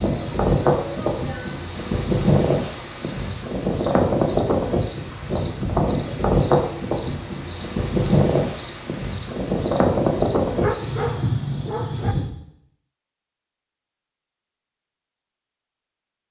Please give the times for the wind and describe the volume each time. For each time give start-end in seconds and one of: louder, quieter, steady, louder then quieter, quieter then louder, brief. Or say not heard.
0.0-11.2 steady.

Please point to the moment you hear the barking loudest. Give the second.
11 s.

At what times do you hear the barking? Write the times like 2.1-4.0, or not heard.
10.6-12.2.